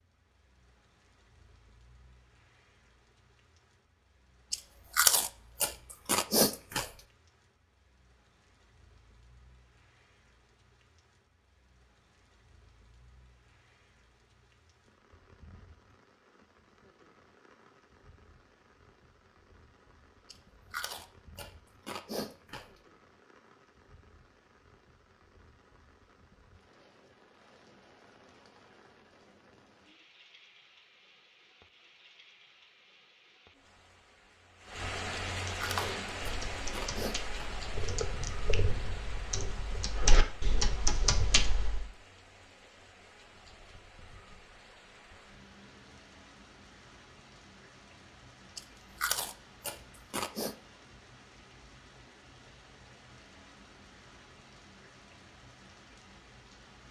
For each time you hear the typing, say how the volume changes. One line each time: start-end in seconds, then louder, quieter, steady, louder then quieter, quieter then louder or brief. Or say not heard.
35.6-41.9 louder.